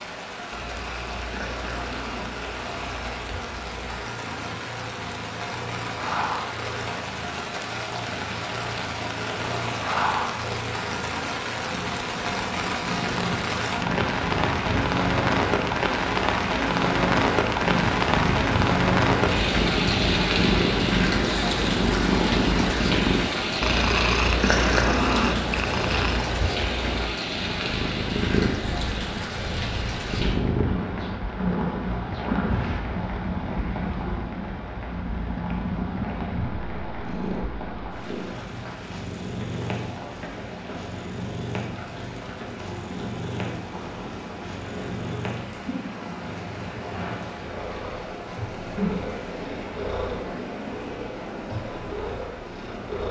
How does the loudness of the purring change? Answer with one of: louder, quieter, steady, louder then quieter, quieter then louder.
louder then quieter.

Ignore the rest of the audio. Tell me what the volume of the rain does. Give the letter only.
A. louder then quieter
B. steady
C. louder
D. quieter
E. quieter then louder
A.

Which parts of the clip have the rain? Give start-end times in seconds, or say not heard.
0.0-53.0.